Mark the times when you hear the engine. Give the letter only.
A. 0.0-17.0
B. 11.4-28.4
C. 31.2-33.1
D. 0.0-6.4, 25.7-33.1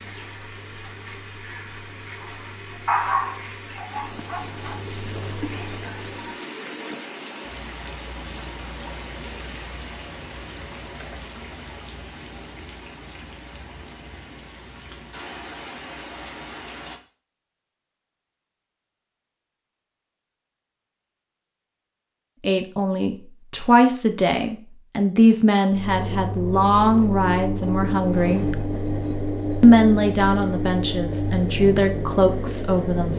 D.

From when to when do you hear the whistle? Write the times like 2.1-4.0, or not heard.
not heard.